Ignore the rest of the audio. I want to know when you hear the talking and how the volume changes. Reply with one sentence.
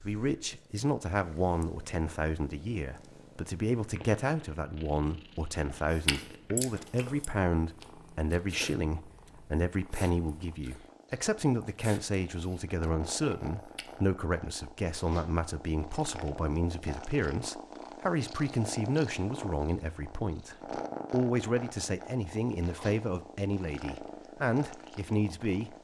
You can hear the talking from 0.0 to 25.7 s, at a steady volume.